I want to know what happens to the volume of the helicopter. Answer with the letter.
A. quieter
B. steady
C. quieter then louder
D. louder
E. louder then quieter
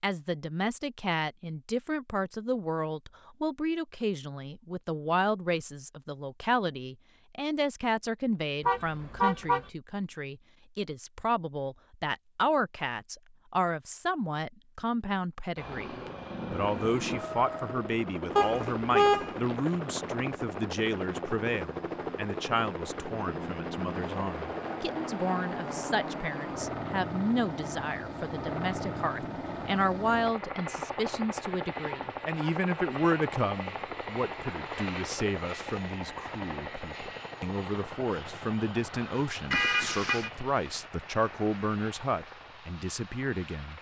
A.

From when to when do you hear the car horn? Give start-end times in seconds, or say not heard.
8.7-9.7, 18.4-19.3, 39.5-40.3.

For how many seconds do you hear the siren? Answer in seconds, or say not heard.
not heard.